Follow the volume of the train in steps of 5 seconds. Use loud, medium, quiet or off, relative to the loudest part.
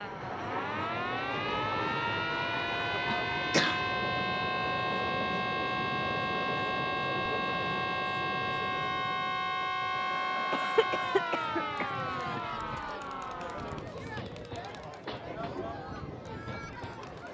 loud, loud, medium, medium.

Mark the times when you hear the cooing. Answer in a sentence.
You can't hear the cooing here.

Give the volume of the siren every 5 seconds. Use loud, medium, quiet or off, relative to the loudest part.
loud, loud, loud, off.